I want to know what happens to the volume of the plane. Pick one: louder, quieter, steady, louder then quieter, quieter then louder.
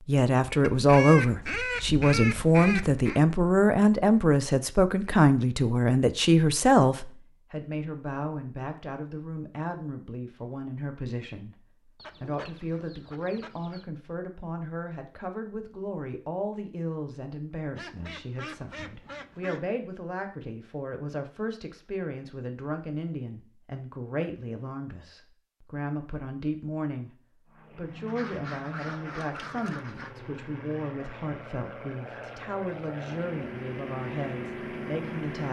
louder.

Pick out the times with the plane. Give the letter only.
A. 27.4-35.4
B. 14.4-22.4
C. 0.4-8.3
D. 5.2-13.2
A.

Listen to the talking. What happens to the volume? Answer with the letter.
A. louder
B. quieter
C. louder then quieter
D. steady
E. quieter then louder
B.